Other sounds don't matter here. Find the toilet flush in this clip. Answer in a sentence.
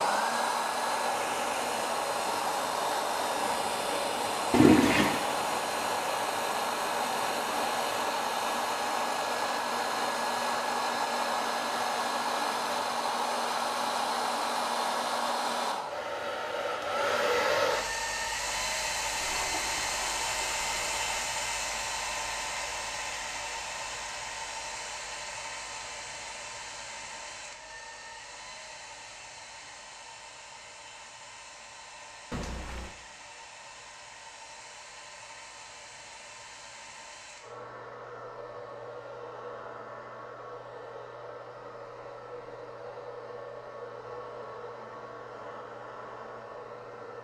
You can hear the toilet flush from 4.5 to 5.2 s, from 19.2 to 21.2 s and from 32.3 to 33.0 s.